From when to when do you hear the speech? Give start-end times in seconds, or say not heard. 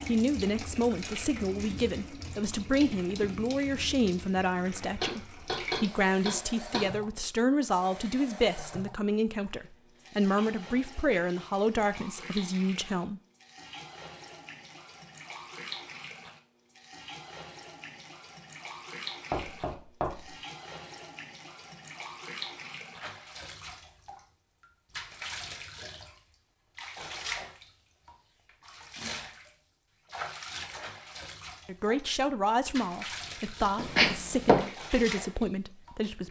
0.1-13.2, 31.6-36.2.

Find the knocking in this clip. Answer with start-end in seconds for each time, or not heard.
5.0-6.9, 19.3-20.4, 33.8-34.6.